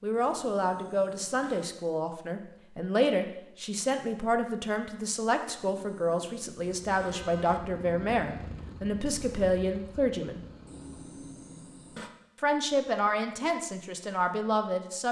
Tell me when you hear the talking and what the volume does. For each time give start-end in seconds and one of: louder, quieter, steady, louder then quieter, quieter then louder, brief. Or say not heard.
0.0-10.4 steady
12.4-15.0 brief.